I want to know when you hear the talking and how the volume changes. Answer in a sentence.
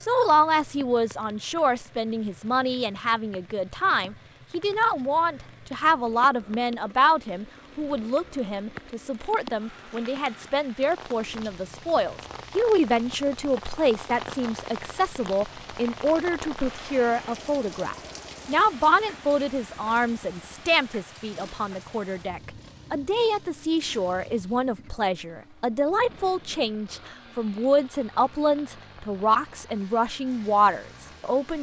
You can hear the talking from 0.0 to 31.5 s, at a steady volume.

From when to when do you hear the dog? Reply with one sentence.
The dog can't be heard in this clip.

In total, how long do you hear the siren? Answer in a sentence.
You can't hear the siren here.